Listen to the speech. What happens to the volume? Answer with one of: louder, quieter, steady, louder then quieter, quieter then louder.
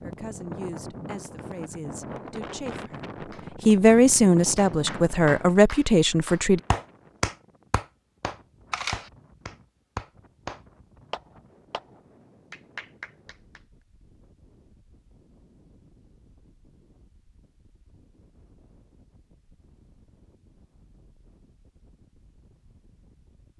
louder.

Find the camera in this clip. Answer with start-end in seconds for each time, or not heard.
8.7-9.1.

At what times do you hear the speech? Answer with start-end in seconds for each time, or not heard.
0.0-6.6.